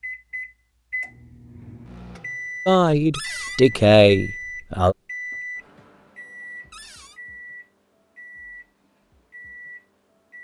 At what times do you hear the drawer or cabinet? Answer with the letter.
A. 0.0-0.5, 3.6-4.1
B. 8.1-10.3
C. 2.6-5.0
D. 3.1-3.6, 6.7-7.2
D.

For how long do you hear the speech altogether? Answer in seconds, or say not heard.
2 s.